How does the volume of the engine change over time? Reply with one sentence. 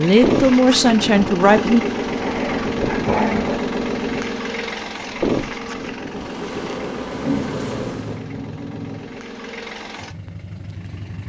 The volume of the engine goes down.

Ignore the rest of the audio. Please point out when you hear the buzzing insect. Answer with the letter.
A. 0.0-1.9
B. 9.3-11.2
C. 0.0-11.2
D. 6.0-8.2
D.